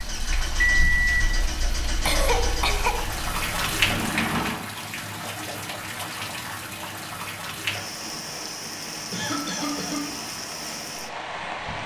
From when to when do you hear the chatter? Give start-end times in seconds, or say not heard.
not heard.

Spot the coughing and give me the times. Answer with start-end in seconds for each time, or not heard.
2.0-3.2, 9.1-10.2.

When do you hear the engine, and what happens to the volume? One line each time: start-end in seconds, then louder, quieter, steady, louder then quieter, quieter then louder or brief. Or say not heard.
0.0-4.7 quieter then louder.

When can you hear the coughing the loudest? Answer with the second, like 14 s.
2 s.